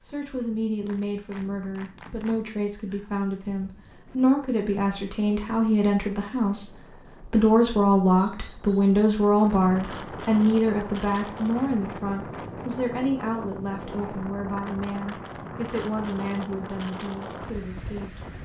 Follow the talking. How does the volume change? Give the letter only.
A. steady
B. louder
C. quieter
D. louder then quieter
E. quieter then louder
D.